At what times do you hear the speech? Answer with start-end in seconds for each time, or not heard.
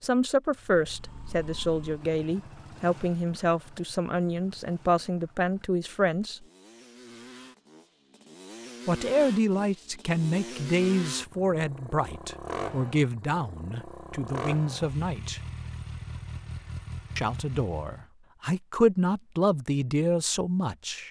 0.0-6.4, 8.8-15.4, 17.1-21.0.